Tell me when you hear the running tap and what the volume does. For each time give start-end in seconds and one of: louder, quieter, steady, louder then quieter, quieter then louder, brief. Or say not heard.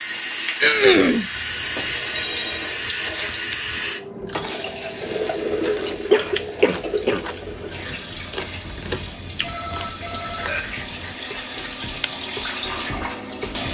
0.0-13.6 quieter then louder.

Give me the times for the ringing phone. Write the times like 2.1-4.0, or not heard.
1.7-2.7, 5.2-6.5, 9.4-10.7.